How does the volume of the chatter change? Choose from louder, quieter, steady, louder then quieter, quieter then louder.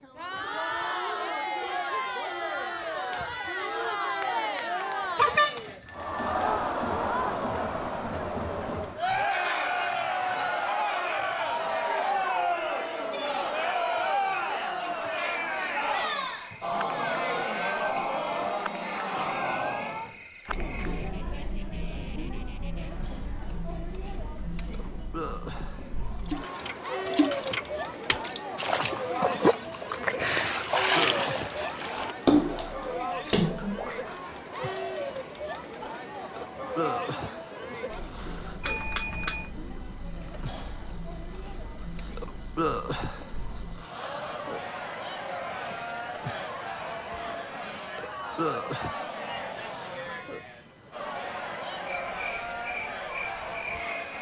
quieter.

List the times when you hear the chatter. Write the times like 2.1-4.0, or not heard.
0.0-54.1.